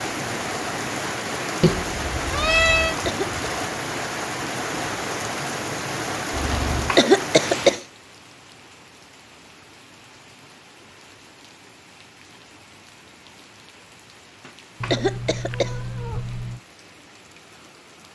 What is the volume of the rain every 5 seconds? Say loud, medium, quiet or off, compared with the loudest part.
loud, loud, quiet, quiet.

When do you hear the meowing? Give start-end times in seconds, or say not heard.
1.6-3.0, 6.3-7.0, 14.8-16.6.